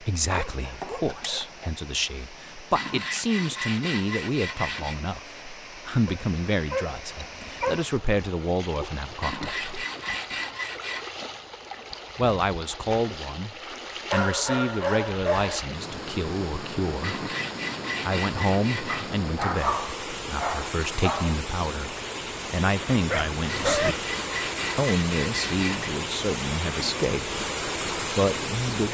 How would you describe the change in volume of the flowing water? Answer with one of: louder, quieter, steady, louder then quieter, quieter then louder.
louder.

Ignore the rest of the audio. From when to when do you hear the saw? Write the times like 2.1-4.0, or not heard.
2.8-5.0, 9.2-11.1, 17.0-19.1, 23.4-25.9.